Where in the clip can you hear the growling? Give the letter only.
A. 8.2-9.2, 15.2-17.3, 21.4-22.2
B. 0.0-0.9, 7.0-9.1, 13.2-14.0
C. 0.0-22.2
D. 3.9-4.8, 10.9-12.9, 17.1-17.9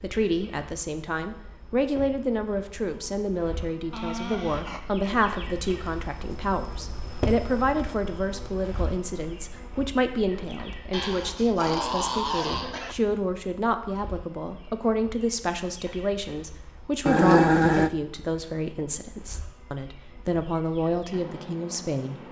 D.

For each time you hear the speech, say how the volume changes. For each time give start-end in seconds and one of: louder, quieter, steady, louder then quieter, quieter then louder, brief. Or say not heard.
0.0-22.2 steady.